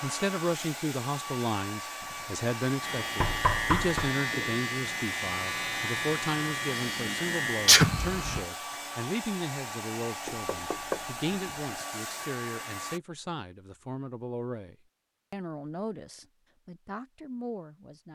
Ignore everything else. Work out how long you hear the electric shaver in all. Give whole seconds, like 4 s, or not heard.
6 s.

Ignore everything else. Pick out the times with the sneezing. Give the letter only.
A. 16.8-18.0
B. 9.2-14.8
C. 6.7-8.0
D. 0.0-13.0
C.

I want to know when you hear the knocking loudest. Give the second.
4 s.